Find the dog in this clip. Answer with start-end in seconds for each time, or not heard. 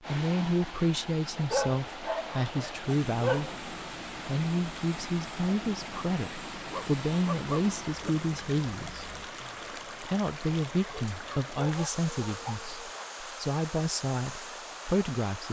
1.4-3.5, 6.7-8.1, 11.1-13.1.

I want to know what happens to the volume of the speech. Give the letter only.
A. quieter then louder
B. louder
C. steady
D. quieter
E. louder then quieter
C.